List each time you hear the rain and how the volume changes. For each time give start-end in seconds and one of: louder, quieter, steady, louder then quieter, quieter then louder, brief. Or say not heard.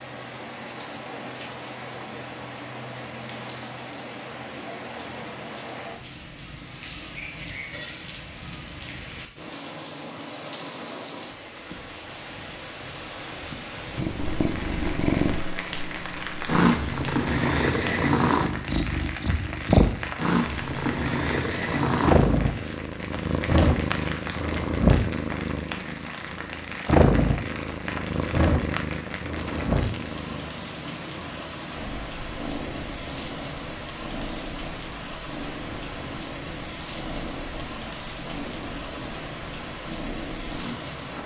0.0-41.2 steady.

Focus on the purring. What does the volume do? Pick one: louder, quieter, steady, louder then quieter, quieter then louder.
quieter.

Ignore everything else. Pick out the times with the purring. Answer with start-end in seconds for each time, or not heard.
13.9-41.2.